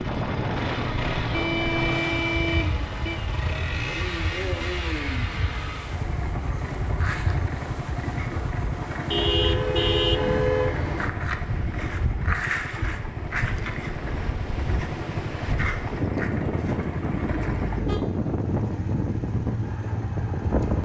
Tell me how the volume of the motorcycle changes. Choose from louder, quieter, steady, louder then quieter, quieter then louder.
steady.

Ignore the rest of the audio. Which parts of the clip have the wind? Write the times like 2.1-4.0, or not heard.
0.0-20.7.